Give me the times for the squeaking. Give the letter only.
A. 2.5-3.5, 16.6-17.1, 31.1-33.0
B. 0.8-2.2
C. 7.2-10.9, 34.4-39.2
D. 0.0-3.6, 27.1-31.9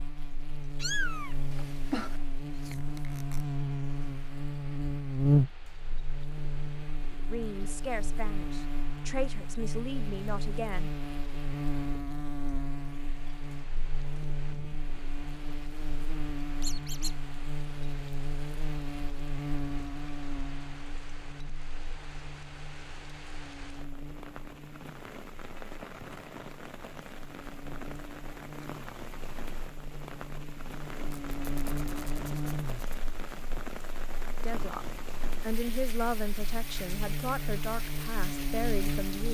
A.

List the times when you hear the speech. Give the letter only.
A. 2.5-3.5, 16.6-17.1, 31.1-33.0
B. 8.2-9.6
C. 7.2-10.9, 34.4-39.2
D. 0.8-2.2
C.